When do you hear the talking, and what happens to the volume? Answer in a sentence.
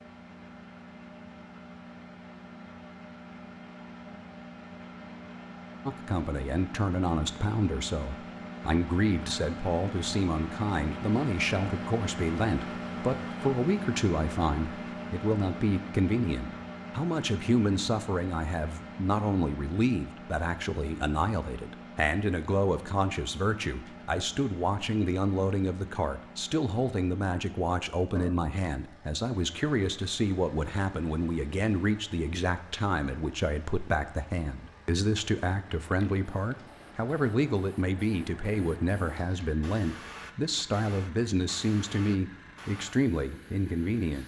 You can hear the talking from 5.8 to 44.2 s, at a steady volume.